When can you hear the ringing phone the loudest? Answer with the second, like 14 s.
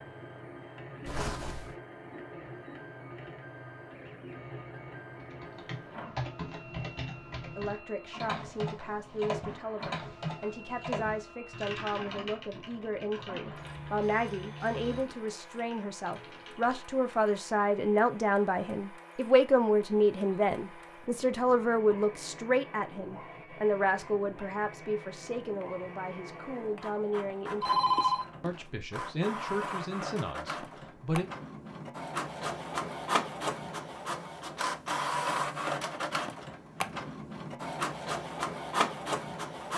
28 s.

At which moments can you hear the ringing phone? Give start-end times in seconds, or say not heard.
1.1-1.8, 13.4-15.1, 27.6-28.5.